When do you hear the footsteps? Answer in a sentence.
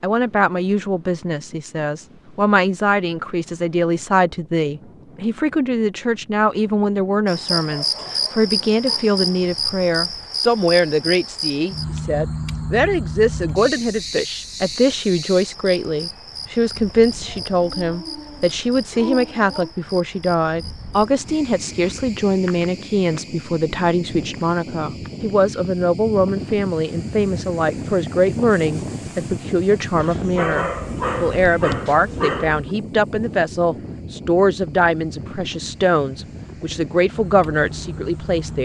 You can't hear the footsteps here.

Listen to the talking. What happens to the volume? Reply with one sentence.
The volume of the talking stays about the same.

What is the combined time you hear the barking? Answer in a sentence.
You can hear the barking for 7 seconds altogether.